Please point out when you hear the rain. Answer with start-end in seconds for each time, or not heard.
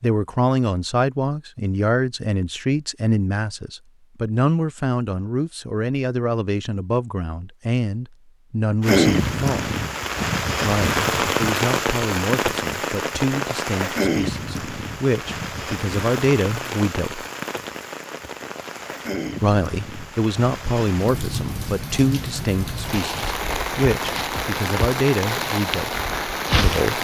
8.8-26.9.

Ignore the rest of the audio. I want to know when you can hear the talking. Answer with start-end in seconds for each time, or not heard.
0.0-9.7, 10.6-17.2, 19.4-26.9.